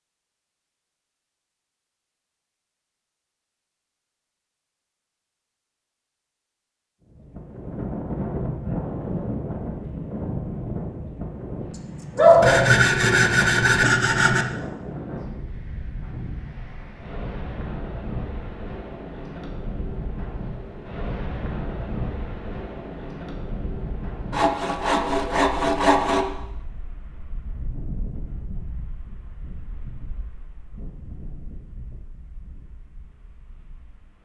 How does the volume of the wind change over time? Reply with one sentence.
The volume of the wind goes down.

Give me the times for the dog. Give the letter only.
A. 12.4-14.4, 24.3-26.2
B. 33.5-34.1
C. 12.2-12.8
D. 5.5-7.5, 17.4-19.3
C.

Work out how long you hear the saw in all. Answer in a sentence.
The saw can be heard for 4 seconds in total.